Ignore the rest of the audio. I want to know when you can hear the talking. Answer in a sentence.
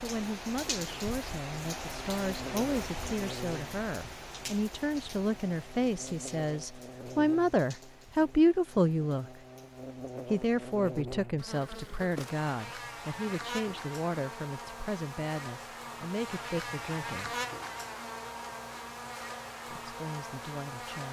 You can hear the talking from 0.0 to 9.4 s, from 10.3 to 17.4 s and from 19.7 to 21.0 s.